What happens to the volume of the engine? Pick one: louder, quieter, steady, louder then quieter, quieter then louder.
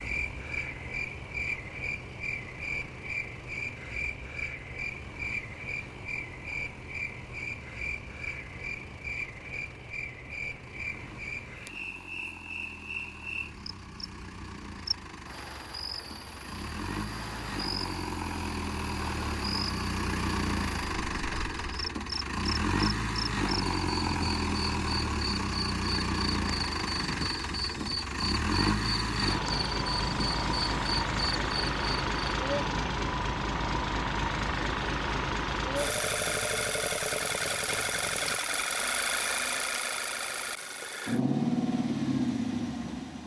louder.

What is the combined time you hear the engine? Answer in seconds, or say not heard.
43 s.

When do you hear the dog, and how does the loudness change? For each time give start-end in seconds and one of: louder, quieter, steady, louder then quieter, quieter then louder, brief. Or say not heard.
not heard.